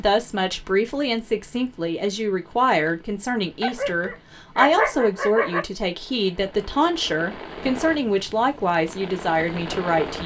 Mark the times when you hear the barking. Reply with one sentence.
The barking can be heard from 3.6 to 5.7 s.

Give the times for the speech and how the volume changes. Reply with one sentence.
You can hear the speech from 0.0 to 10.2 s, at a steady volume.